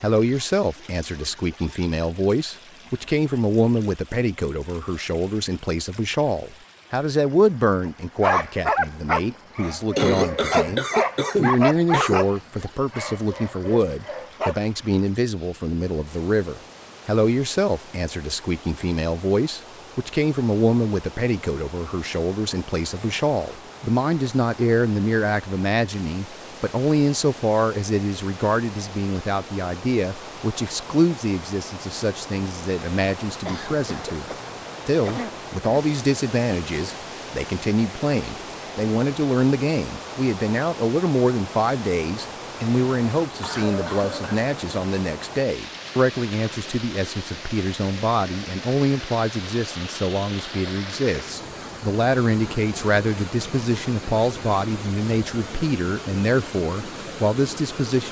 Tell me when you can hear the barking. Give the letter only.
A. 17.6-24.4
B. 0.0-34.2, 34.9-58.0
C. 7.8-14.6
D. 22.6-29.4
C.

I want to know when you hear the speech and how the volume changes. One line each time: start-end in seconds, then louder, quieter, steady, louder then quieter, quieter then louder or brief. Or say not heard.
0.0-34.2 steady
34.9-58.0 steady.